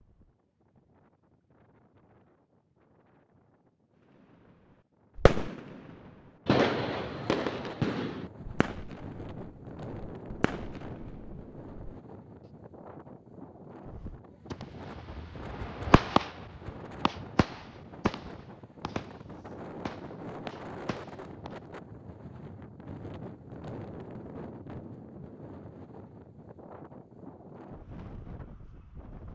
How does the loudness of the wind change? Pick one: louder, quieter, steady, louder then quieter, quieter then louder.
louder.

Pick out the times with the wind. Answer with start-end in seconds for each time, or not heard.
0.0-29.2.